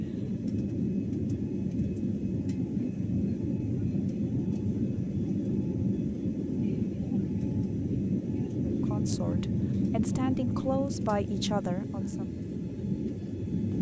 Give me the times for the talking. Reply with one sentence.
You can hear the talking from 8.7 to 12.2 s.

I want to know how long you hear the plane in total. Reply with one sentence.
The plane can be heard for 14 seconds in total.